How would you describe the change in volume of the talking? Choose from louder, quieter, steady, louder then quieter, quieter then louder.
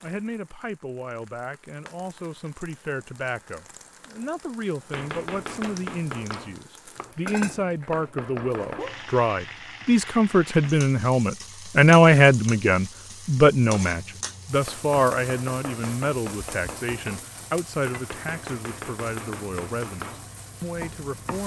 louder then quieter.